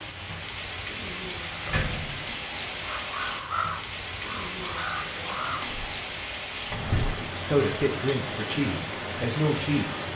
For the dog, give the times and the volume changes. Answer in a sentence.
The dog can't be heard in this clip.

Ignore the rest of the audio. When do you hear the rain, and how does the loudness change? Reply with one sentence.
You can hear the rain from 0.0 to 10.1 s, at a steady volume.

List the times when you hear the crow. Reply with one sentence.
You can hear the crow from 2.8 to 5.7 s.